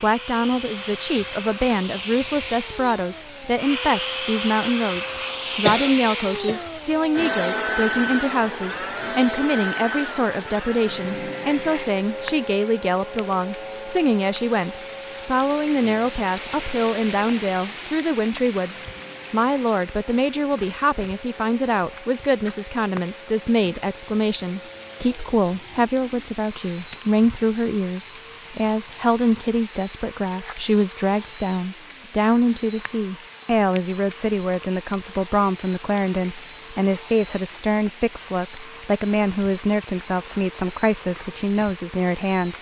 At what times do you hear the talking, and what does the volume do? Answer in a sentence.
You can hear the talking from 0.0 to 42.5 s, at a steady volume.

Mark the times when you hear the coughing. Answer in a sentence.
The coughing can be heard from 5.7 to 6.7 s.